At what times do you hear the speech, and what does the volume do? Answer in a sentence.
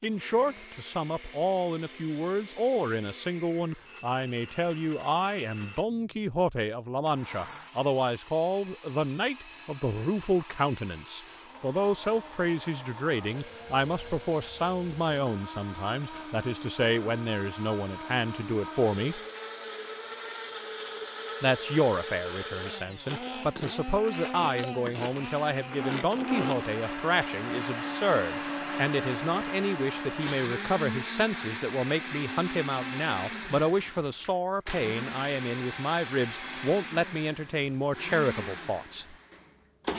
The speech can be heard from 0.0 to 19.2 s, at a steady volume; and from 21.4 to 39.1 s, at a steady volume.